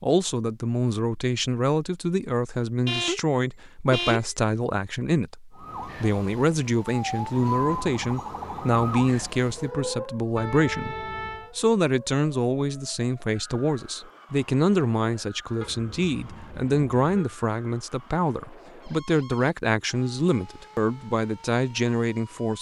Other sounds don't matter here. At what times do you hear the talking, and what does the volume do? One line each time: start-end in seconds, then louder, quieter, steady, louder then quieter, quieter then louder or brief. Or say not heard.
0.0-22.5 steady.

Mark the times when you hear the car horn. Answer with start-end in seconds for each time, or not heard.
2.9-4.5, 10.3-11.5, 15.6-17.3.